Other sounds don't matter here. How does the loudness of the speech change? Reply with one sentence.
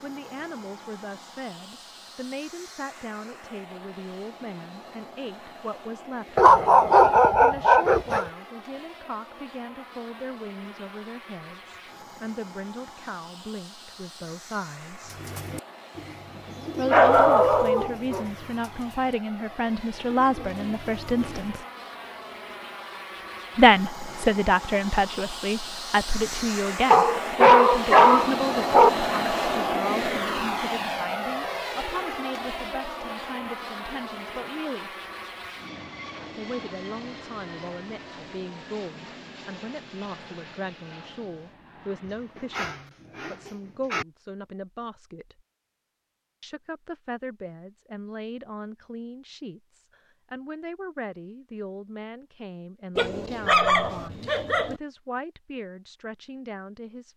The volume of the speech goes up, then down.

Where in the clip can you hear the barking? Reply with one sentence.
You can hear the barking from 6.3 to 8.2 s, from 16.9 to 18.2 s, from 26.9 to 28.9 s, from 42.0 to 44.0 s and from 53.0 to 54.8 s.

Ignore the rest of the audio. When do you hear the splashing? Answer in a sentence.
The splashing can't be heard in this clip.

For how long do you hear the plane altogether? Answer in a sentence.
You can hear the plane for 43 seconds altogether.